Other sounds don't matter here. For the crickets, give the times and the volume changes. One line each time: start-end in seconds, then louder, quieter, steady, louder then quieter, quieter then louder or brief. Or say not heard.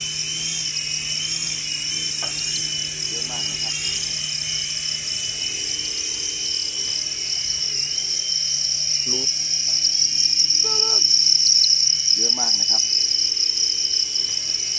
0.0-14.7 louder.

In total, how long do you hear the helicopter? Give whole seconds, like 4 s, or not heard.
15 s.